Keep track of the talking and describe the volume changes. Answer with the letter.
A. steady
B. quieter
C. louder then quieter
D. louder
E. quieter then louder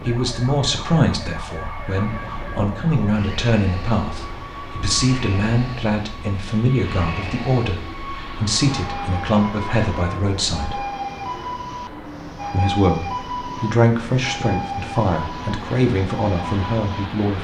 A.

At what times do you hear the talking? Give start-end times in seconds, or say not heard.
0.0-10.8, 12.5-17.3.